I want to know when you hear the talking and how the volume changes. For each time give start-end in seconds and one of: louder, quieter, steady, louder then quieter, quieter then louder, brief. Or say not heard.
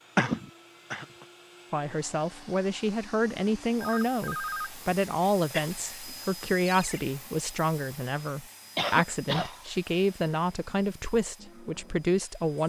1.7-12.6 steady.